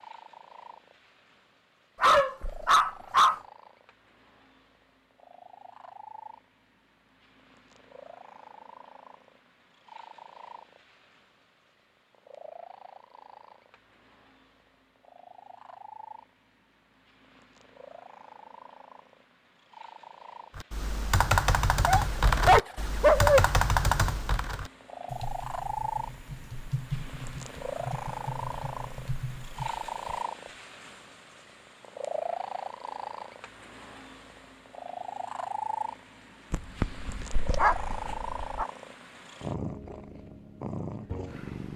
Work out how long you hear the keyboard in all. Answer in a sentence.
You can hear the keyboard for 10 seconds altogether.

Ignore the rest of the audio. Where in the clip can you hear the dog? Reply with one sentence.
You can hear the dog from 2.0 to 3.4 s, from 21.9 to 23.4 s and from 36.5 to 38.6 s.